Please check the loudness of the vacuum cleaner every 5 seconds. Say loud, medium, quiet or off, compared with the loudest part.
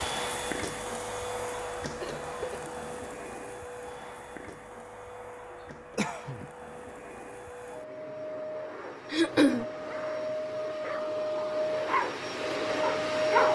medium, medium, loud.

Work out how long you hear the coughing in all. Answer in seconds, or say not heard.
2 s.